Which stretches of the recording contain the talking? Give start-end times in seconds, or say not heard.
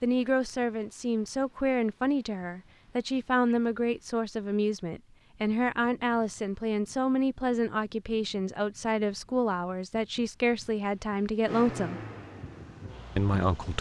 0.0-12.0, 13.2-13.7.